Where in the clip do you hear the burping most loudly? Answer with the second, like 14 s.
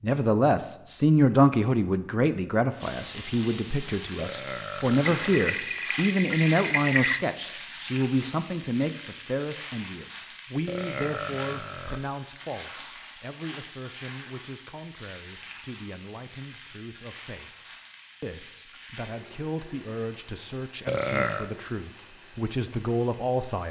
21 s.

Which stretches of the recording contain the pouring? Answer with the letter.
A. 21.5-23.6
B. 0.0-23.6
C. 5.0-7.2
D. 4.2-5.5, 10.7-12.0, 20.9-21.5
C.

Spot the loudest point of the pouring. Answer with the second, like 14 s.
7 s.